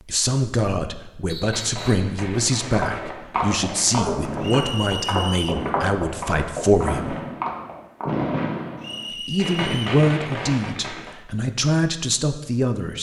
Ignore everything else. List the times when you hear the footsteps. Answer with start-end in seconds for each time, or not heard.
2.7-8.3.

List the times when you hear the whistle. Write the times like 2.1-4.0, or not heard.
1.2-2.1, 4.4-5.7, 8.8-9.8.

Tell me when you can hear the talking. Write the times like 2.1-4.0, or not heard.
0.1-7.2, 9.2-12.9.